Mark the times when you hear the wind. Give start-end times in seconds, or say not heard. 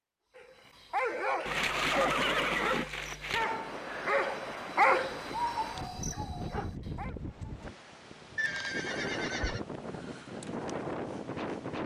3.4-11.8.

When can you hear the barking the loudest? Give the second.
5 s.